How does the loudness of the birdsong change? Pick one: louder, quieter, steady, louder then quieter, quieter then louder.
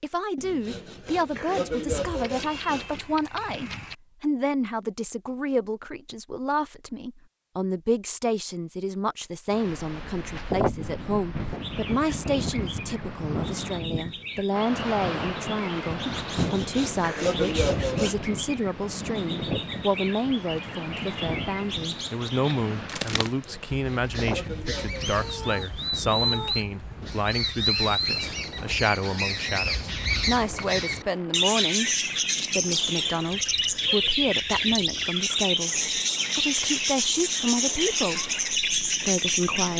louder.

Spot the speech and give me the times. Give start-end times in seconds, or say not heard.
0.0-39.7.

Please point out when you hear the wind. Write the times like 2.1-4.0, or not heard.
9.5-39.7.